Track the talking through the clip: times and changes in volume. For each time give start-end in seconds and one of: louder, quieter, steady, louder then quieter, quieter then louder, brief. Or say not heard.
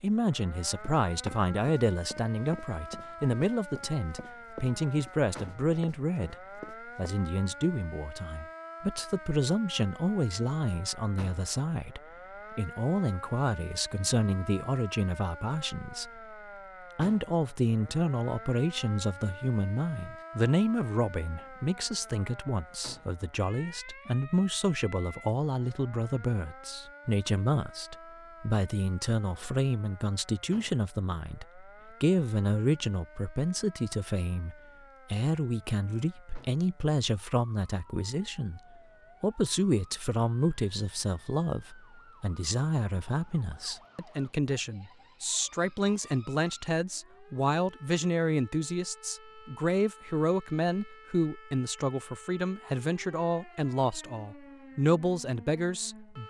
0.0-16.4 steady
16.9-56.2 steady.